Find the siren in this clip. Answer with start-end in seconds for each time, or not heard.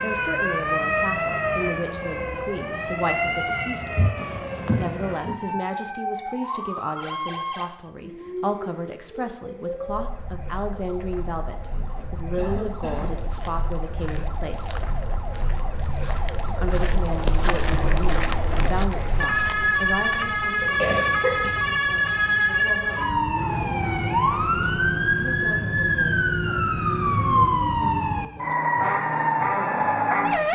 0.0-30.5.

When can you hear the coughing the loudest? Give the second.
21 s.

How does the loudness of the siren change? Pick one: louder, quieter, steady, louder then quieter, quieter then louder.
quieter then louder.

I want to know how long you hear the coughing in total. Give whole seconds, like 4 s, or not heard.
2 s.